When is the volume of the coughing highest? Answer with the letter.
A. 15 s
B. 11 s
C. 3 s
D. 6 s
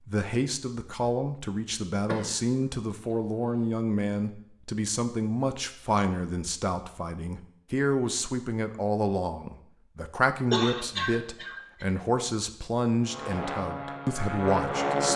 B.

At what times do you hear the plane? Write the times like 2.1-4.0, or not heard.
13.0-15.1.